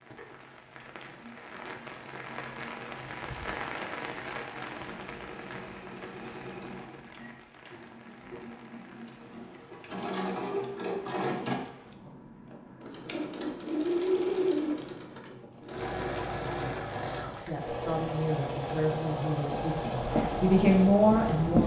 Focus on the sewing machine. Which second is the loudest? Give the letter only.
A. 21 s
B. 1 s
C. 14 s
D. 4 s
C.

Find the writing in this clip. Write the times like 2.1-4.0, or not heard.
19.5-21.6.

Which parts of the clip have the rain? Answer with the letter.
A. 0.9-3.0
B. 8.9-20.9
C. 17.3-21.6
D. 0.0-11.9
D.